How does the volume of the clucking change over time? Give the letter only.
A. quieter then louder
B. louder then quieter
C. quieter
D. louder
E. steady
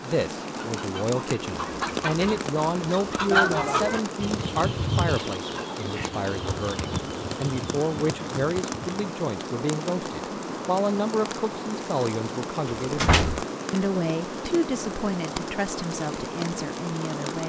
B.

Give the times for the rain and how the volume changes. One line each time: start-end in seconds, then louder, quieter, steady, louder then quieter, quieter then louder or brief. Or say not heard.
0.0-17.4 steady.